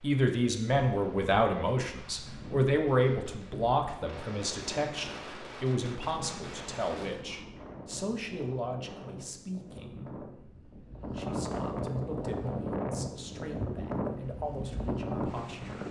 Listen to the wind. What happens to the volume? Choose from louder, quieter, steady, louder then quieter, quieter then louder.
louder.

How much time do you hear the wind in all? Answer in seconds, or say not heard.
16 s.